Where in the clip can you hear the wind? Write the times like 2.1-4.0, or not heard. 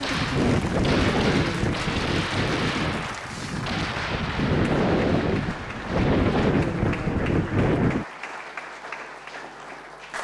0.0-8.1.